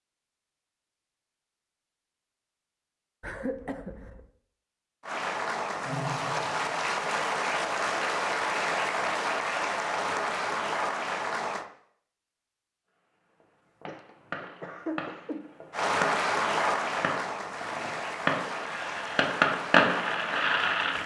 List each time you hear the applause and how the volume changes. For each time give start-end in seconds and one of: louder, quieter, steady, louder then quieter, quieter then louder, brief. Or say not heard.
5.0-11.7 steady
15.7-21.0 quieter.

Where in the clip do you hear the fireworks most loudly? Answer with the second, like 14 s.
20 s.